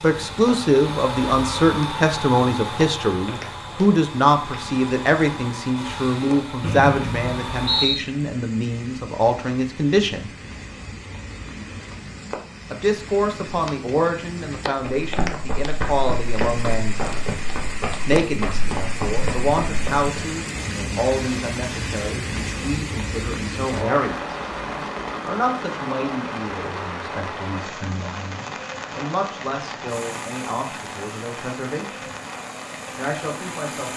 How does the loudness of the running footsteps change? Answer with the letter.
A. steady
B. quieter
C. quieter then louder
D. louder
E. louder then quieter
A.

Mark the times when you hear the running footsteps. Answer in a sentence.
The running footsteps can be heard from 14.8 to 20.1 s.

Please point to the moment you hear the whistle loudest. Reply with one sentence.
The loudest moment of the whistle is at 8 seconds.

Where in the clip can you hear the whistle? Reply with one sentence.
The whistle can be heard from 6.6 to 8.1 s.